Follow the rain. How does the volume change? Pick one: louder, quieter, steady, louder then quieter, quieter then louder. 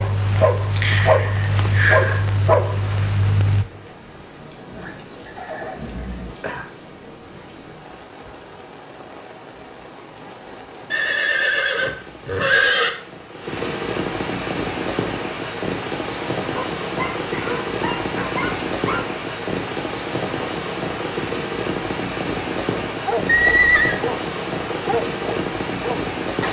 louder.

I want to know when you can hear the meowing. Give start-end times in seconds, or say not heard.
not heard.